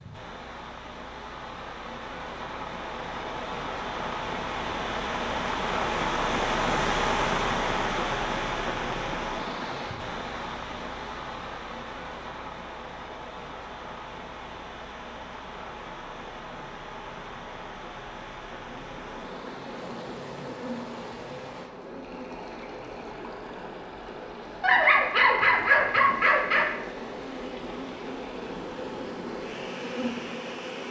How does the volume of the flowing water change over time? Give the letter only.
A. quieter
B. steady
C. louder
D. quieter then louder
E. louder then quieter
A.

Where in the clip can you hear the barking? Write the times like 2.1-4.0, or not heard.
24.6-26.6.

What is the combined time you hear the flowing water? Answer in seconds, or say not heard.
31 s.